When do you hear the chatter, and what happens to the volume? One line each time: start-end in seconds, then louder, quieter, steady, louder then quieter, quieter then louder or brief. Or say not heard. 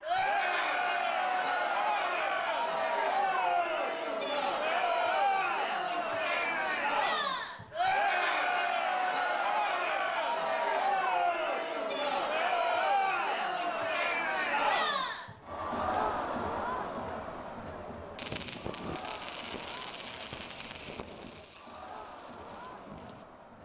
0.0-23.6 quieter.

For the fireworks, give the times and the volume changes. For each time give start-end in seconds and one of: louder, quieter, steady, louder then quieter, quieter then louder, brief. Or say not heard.
18.1-23.2 quieter.